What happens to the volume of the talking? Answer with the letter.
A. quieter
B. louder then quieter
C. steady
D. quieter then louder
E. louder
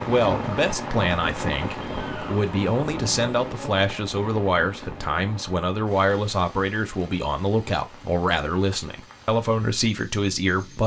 C.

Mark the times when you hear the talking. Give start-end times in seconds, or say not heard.
0.1-10.8.